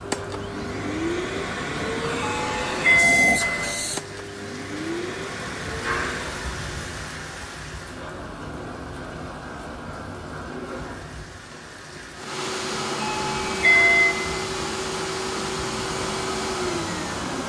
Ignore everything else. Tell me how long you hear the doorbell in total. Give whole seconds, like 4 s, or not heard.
3 s.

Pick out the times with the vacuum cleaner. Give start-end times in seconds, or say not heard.
0.0-6.3, 12.2-17.4.